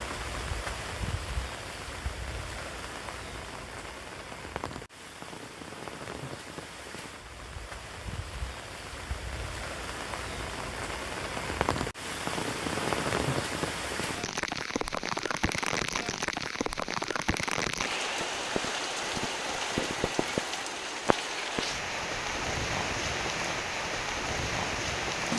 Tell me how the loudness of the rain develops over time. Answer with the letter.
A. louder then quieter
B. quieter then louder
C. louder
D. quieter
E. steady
C.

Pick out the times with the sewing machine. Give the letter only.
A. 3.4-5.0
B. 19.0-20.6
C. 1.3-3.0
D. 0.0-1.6
B.